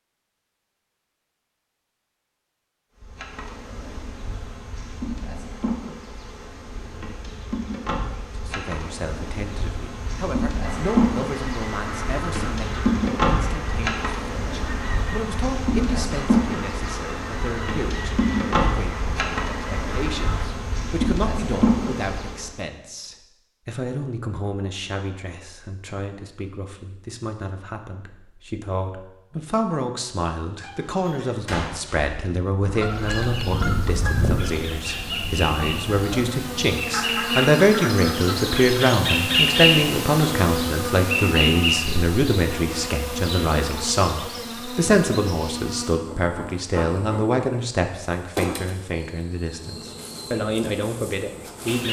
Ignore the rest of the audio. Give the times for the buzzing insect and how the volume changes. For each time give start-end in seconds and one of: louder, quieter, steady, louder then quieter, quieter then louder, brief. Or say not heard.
3.0-22.6 louder
32.9-51.8 louder then quieter.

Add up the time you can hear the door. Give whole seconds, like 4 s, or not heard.
2 s.